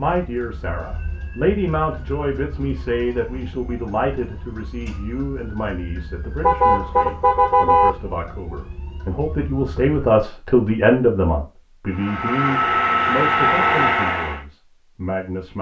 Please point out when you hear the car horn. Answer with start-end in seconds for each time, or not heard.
6.4-7.9.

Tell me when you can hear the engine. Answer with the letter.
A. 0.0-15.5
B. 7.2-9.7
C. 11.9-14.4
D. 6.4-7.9
C.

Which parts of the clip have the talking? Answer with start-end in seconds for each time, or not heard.
0.0-15.5.